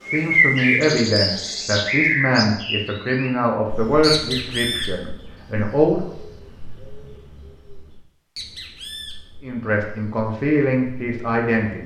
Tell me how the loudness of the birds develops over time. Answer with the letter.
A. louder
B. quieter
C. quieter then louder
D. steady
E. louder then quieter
C.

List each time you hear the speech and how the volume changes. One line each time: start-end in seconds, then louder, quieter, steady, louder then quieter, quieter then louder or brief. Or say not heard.
0.0-6.0 quieter
9.4-11.8 brief.